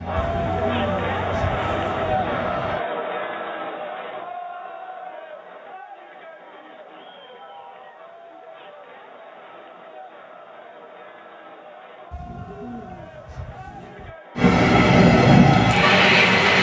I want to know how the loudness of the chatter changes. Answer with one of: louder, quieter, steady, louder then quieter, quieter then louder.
quieter.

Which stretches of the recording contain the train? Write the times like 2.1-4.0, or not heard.
0.0-2.9, 14.3-16.5.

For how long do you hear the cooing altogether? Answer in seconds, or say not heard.
4 s.